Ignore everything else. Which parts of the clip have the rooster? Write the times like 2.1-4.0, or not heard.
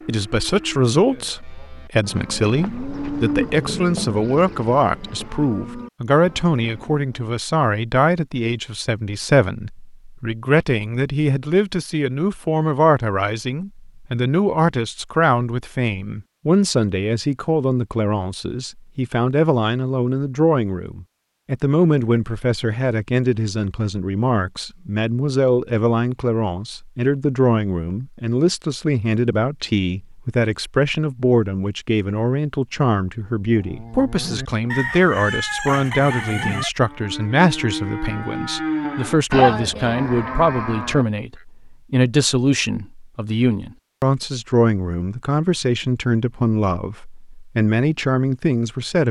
34.7-36.7.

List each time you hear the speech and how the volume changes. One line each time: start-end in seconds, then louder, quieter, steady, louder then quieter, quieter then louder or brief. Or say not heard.
0.1-49.0 steady.